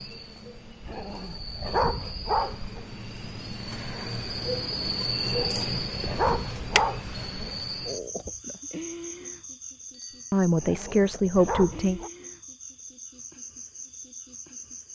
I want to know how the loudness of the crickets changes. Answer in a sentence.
The loudness of the crickets goes up, then down.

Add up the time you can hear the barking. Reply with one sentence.
The barking can be heard for 6 seconds in total.